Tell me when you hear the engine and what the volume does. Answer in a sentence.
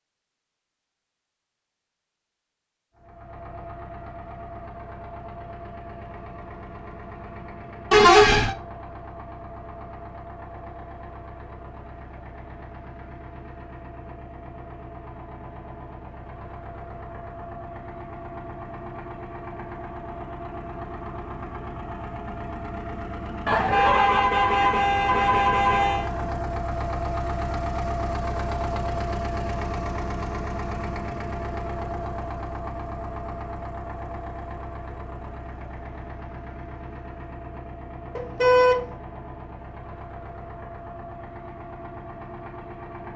You can hear the engine from 3.0 to 43.1 s, getting louder then quieter.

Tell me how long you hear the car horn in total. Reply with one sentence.
The car horn can be heard for 4 seconds in total.